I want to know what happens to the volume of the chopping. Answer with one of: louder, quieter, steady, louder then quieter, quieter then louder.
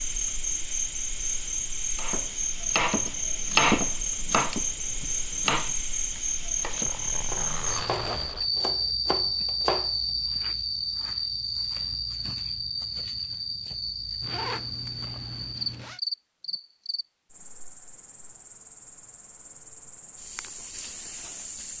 quieter.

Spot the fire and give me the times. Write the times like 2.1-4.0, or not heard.
not heard.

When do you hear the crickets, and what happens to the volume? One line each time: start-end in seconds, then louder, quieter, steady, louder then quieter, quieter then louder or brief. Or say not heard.
0.0-21.7 quieter.